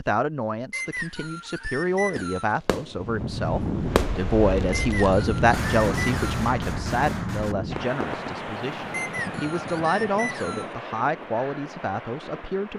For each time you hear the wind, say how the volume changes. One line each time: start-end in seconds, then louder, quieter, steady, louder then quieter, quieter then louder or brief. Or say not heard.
2.9-12.7 quieter.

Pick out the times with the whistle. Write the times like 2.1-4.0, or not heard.
0.7-2.5, 4.7-6.2, 8.9-10.8.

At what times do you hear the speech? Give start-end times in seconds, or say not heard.
0.0-12.7.